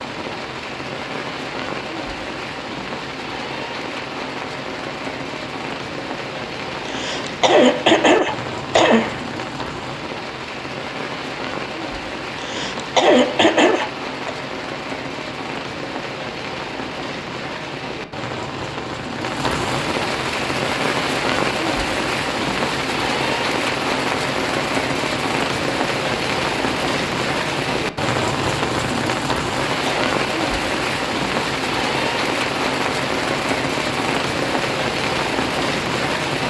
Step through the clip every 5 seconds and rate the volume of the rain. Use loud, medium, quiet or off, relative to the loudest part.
medium, medium, medium, medium, loud, loud, loud, loud.